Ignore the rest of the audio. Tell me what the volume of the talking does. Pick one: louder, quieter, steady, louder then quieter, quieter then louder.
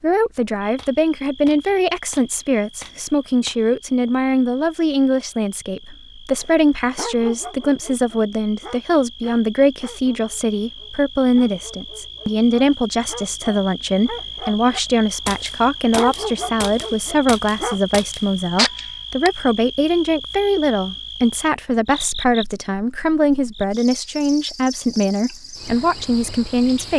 steady.